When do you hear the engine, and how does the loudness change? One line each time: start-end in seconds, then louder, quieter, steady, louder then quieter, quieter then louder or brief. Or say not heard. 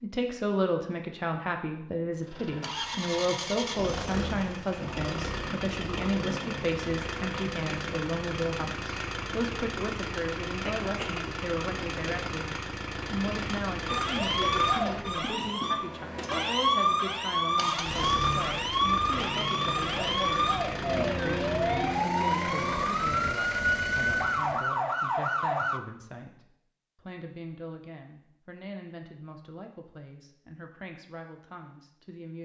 2.2-24.6 steady.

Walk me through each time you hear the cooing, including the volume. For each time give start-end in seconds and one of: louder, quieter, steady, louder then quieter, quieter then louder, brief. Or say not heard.
not heard.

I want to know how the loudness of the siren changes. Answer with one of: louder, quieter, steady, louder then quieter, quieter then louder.
steady.